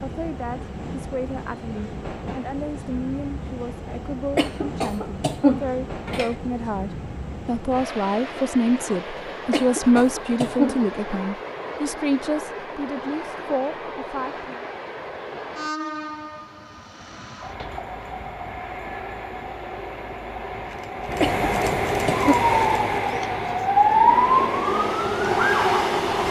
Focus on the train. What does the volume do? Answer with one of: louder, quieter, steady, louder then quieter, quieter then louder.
louder.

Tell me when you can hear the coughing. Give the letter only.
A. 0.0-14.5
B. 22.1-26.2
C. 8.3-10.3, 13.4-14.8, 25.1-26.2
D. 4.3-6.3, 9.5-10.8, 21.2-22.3
D.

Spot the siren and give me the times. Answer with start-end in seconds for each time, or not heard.
22.1-26.2.